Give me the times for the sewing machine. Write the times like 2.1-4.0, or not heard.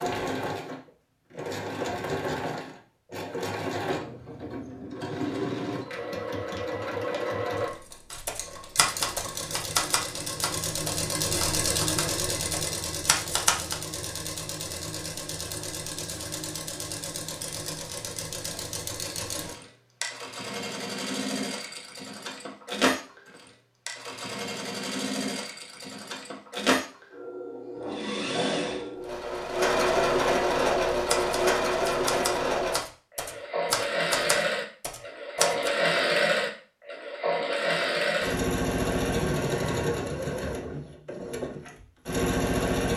0.0-42.9.